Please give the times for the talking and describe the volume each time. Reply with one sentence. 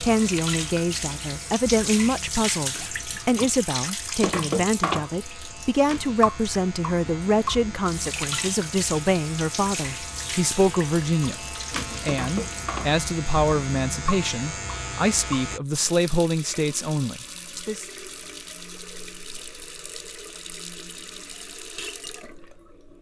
The talking can be heard from 0.0 to 17.9 s, at a steady volume.